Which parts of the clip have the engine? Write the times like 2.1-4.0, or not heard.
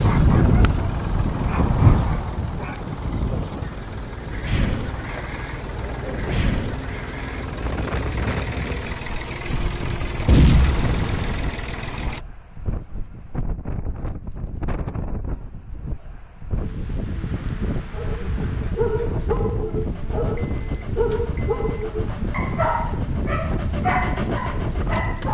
0.0-12.2, 19.9-25.2.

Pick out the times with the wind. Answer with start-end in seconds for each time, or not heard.
0.0-25.2.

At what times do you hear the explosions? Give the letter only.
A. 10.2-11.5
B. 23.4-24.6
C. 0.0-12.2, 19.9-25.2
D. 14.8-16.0
A.